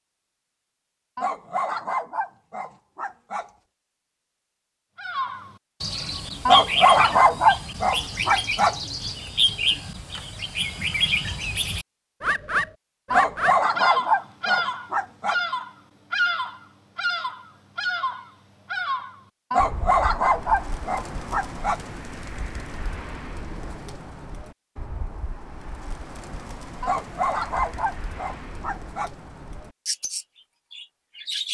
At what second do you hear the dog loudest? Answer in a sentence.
The volume of the dog peaks at 7 seconds.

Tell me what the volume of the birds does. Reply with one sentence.
The loudness of the birds goes down.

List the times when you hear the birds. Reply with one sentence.
You can hear the birds from 5.0 to 31.4 s.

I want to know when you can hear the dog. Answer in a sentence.
The dog can be heard from 1.1 to 3.5 s, from 6.5 to 8.8 s, from 13.1 to 15.4 s, from 19.5 to 21.8 s and from 26.8 to 29.1 s.